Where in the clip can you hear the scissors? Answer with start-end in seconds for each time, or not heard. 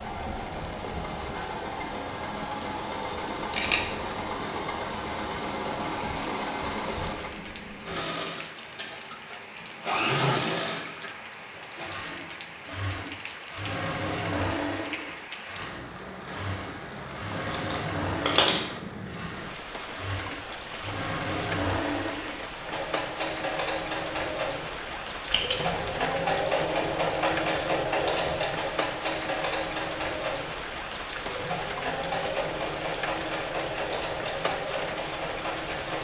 3.5-4.0, 17.3-18.6, 25.3-26.0.